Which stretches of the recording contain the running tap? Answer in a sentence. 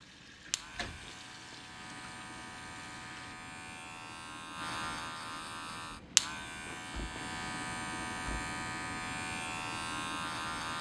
The running tap can be heard from 0.0 to 3.4 s.